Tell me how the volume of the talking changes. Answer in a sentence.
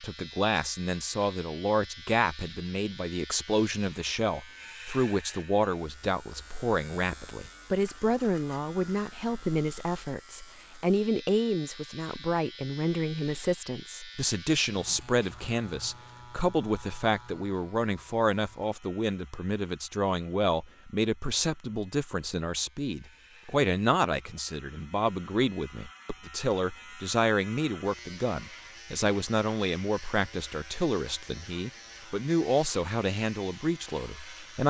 The loudness of the talking stays about the same.